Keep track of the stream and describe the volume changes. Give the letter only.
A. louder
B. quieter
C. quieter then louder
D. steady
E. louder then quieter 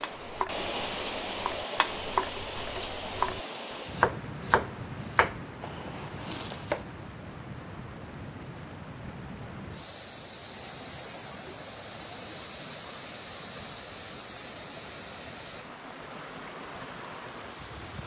B.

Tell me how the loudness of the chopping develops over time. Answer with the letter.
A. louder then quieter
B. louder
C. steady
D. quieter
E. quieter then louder
A.